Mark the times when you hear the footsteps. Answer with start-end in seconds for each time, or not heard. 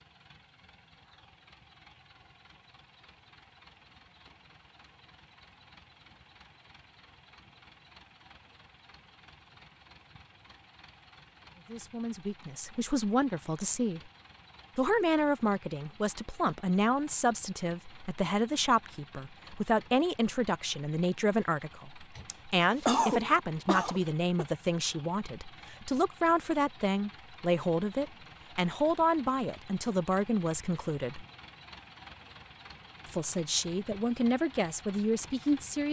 not heard.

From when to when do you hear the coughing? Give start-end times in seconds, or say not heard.
22.2-24.4.